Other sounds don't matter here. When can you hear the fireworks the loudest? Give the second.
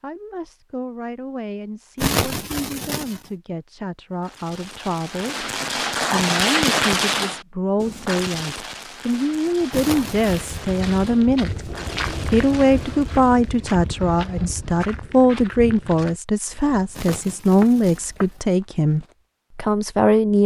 7 s.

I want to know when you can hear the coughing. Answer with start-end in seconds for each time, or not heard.
1.9-3.2, 9.7-10.4, 16.9-18.4.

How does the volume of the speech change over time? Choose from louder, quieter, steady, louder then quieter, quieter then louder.
louder.